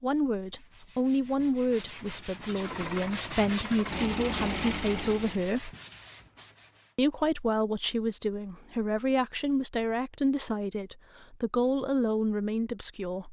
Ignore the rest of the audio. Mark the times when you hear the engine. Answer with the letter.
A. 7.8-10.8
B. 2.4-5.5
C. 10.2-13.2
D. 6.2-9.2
B.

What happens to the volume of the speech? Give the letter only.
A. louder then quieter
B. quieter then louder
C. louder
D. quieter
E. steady
E.